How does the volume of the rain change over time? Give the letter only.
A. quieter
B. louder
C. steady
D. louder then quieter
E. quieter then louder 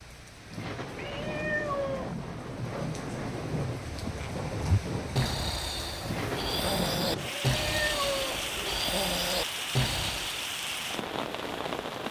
C.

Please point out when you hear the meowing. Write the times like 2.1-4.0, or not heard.
0.9-2.1, 7.2-8.4.